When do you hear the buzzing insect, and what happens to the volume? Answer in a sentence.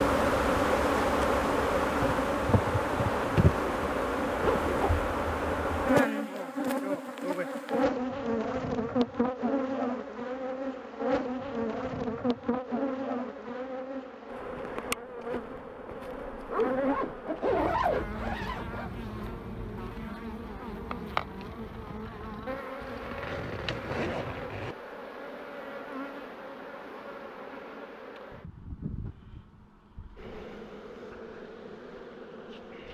You can hear the buzzing insect from 0.0 to 32.9 s, getting quieter.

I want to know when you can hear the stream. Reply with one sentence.
You can't hear the stream here.